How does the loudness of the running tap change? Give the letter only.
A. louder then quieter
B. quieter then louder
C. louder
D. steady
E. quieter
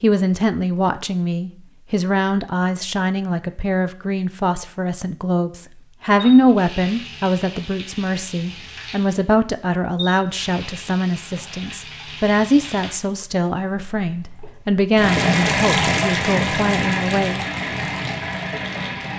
C.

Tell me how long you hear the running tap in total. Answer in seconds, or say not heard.
13 s.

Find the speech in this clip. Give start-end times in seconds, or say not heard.
0.0-17.4.